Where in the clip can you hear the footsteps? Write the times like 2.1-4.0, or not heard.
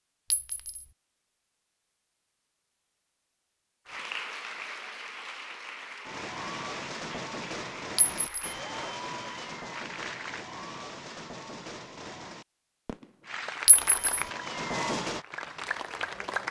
not heard.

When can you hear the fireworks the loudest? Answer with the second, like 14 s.
15 s.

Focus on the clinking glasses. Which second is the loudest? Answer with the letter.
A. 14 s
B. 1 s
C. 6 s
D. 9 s
A.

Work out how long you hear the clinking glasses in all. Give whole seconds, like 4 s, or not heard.
2 s.